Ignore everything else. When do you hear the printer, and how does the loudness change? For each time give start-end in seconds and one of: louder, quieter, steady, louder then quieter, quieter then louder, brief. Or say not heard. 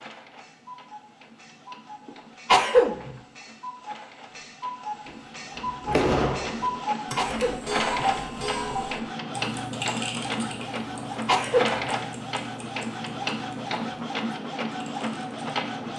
0.0-15.9 louder.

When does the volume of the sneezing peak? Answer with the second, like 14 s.
3 s.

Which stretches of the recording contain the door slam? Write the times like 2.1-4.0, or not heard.
5.0-6.8.